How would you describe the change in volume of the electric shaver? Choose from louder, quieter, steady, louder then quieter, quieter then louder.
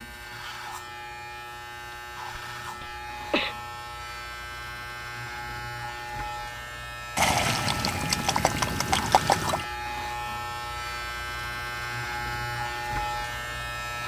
louder.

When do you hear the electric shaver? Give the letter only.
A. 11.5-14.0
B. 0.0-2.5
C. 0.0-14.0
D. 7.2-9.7
C.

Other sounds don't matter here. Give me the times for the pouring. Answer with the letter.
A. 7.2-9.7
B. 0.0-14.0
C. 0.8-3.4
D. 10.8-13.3
A.